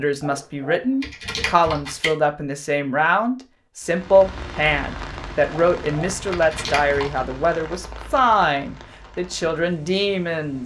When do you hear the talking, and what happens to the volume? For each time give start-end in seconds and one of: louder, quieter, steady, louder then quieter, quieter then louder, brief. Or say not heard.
0.0-10.6 steady.